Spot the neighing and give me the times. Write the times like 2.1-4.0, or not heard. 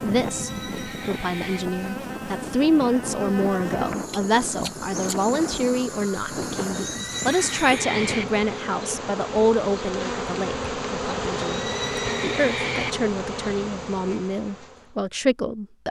0.2-1.6, 6.7-8.2, 11.4-12.9.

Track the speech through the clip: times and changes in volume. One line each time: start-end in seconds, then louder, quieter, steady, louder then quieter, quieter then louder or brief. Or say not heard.
0.0-15.8 steady.